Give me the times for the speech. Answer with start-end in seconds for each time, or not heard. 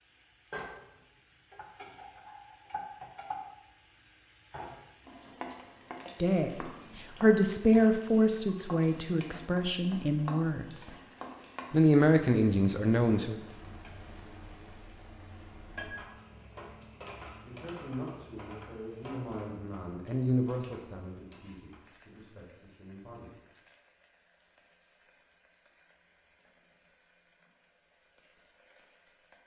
6.2-10.9, 11.7-13.3, 17.4-23.4.